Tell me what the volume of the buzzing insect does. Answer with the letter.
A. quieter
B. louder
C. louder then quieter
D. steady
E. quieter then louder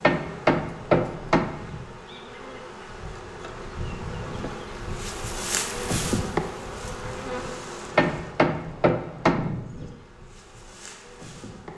C.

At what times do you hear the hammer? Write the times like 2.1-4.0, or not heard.
0.0-1.6, 8.0-9.5.